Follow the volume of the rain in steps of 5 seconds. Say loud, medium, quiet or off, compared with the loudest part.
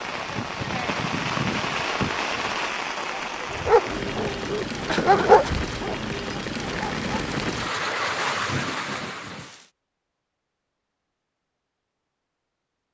loud, loud, off.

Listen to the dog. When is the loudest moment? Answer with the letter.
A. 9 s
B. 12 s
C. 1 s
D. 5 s
D.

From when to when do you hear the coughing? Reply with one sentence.
You can hear the coughing from 4.8 to 5.6 s.